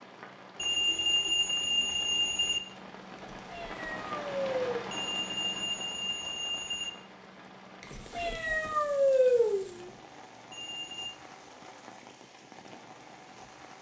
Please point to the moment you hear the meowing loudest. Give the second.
9 s.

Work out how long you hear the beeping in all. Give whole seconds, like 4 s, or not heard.
5 s.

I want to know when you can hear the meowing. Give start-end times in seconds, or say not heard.
3.1-4.8, 7.8-9.9.